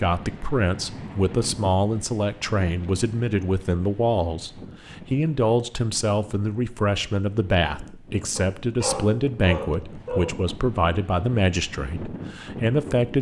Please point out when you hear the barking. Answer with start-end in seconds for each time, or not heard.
8.3-10.3.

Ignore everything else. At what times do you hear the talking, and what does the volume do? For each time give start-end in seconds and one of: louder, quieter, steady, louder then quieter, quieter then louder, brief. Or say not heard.
0.0-13.1 steady.